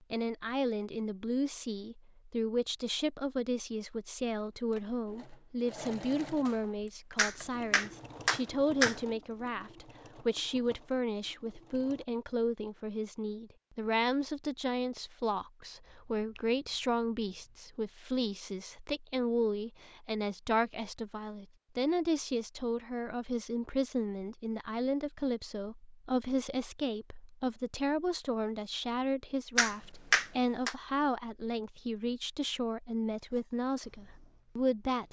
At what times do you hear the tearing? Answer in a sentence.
You can't hear the tearing here.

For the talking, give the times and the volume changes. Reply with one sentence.
You can hear the talking from 0.1 to 35.0 s, at a steady volume.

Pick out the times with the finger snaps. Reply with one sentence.
You can hear the finger snaps from 7.2 to 9.0 s, from 15.8 to 17.6 s and from 29.6 to 30.8 s.